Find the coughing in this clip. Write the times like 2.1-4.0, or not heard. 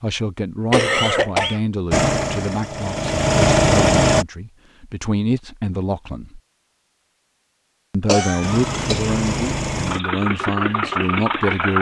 0.7-1.6, 8.1-9.1.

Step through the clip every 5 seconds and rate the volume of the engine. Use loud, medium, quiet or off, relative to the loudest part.
loud, medium, medium.